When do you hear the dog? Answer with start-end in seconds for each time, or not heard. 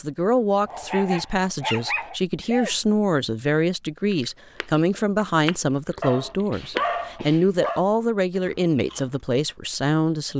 0.7-2.1, 6.0-7.8.